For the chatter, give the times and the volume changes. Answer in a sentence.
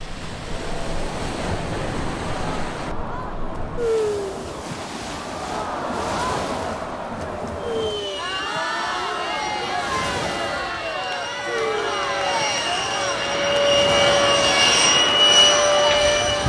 The chatter can be heard from 0.1 to 16.4 s, getting louder.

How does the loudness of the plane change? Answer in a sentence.
The volume of the plane goes up.